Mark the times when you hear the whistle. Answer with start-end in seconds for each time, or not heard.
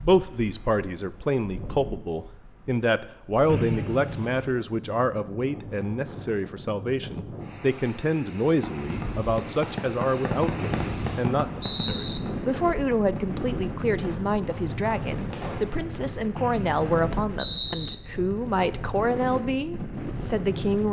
3.5-4.5, 10.6-12.2, 16.4-17.9.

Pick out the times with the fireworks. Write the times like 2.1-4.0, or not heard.
8.5-15.9.